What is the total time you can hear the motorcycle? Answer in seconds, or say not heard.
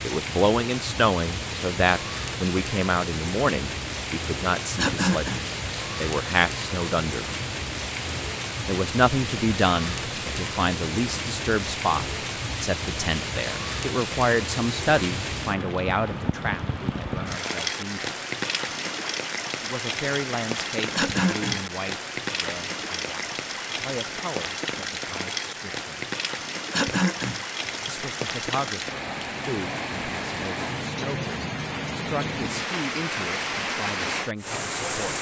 not heard.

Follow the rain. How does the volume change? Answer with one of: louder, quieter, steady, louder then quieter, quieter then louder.
steady.